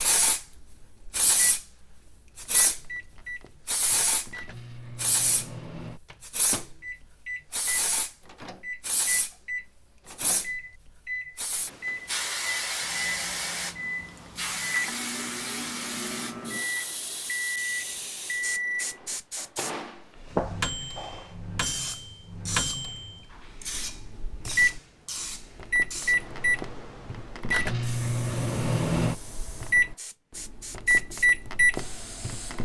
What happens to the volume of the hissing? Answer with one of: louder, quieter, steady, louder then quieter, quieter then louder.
quieter.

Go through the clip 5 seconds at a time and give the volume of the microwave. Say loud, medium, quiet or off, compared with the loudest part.
quiet, quiet, medium, medium, medium, loud, loud.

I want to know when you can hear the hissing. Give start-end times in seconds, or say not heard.
0.0-32.6.